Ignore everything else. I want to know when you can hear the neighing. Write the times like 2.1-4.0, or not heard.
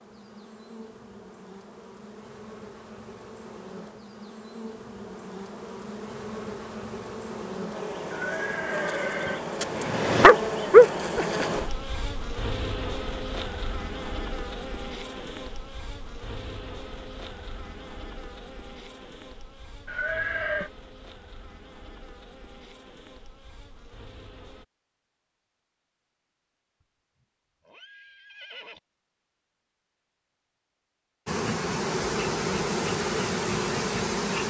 8.1-9.4, 19.9-20.7, 27.6-28.8.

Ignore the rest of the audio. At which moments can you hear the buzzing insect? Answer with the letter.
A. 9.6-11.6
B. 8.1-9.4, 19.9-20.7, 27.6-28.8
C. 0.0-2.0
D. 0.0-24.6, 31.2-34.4
D.